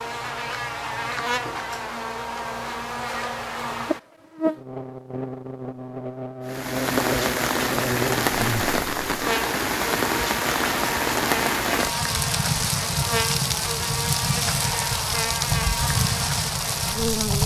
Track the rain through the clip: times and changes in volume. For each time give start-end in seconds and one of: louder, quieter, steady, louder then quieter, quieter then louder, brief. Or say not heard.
6.5-17.4 steady.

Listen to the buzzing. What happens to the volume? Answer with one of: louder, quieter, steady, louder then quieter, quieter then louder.
steady.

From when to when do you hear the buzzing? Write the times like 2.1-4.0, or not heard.
0.0-17.4.